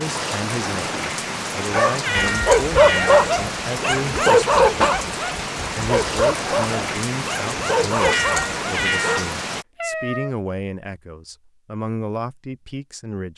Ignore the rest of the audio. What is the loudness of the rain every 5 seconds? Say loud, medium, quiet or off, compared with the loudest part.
loud, loud, off.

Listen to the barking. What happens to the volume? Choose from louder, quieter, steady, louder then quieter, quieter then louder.
quieter.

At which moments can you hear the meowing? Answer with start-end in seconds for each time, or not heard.
2.0-3.3, 8.0-10.3.